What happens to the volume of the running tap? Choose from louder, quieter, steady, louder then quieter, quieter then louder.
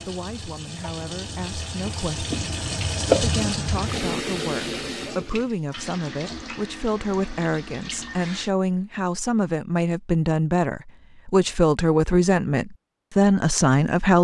louder then quieter.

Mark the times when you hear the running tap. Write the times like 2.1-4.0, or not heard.
0.0-8.5.